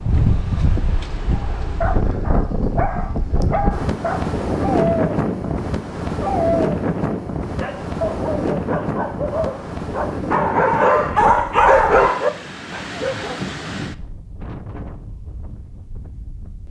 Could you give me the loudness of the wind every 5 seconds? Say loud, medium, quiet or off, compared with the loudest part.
loud, loud, medium, quiet.